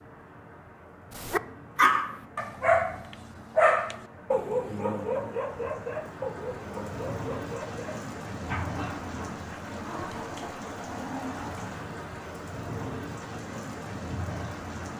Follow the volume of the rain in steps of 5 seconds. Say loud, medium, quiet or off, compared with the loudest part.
medium, loud, loud.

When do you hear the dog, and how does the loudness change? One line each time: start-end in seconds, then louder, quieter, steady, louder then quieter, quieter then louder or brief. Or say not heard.
1.1-11.8 quieter.